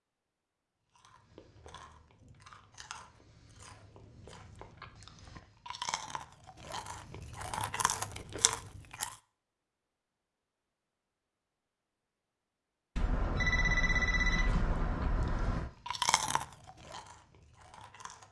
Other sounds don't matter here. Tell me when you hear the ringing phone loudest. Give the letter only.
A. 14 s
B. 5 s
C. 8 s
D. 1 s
A.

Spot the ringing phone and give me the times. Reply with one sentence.
You can hear the ringing phone from 12.9 to 15.7 s.